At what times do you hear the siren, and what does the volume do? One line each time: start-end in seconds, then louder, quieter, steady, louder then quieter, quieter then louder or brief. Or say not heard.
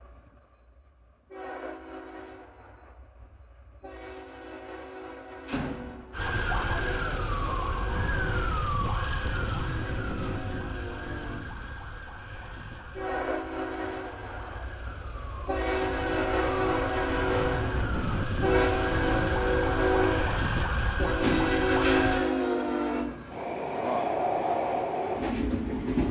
6.1-22.2 quieter then louder.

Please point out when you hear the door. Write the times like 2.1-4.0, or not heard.
5.5-6.0, 21.2-22.3.